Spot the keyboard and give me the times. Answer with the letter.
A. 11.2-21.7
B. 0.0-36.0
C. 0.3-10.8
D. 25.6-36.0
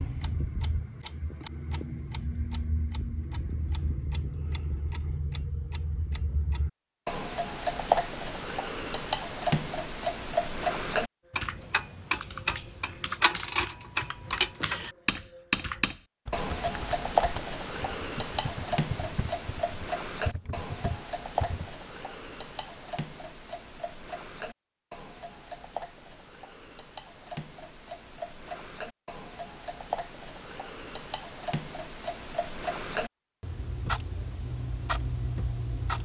A.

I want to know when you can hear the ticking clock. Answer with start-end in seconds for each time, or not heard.
0.0-36.0.